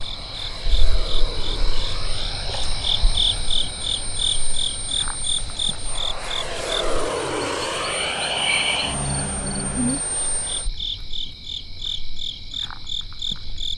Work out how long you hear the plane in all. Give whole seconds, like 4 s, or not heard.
11 s.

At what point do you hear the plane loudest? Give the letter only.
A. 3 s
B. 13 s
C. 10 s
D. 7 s
D.